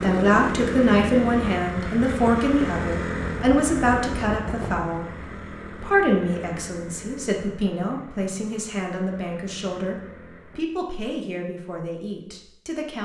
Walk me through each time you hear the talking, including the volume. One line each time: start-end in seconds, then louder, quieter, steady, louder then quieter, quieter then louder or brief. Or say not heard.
0.0-13.0 quieter.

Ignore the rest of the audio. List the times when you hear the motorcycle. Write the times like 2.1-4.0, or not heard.
0.0-10.6.